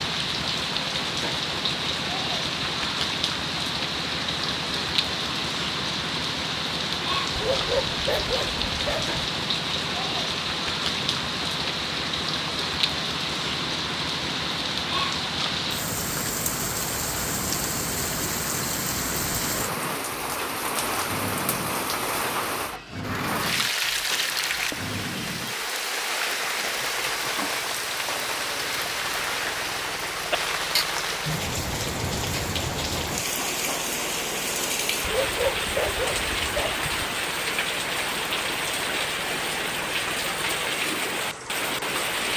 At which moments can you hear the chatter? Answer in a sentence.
You can't hear the chatter here.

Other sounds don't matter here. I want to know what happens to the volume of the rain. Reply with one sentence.
The loudness of the rain stays about the same.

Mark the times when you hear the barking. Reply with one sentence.
You can hear the barking from 7.3 to 9.2 s and from 35.0 to 36.9 s.